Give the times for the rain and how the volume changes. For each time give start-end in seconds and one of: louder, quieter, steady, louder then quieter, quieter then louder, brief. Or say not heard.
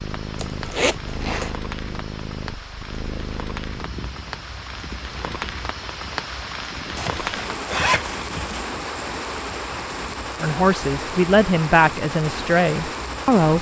0.0-13.5 louder.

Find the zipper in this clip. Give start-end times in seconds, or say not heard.
0.3-1.6, 7.0-8.7.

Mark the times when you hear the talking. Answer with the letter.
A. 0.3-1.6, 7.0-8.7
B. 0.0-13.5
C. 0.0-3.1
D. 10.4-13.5
D.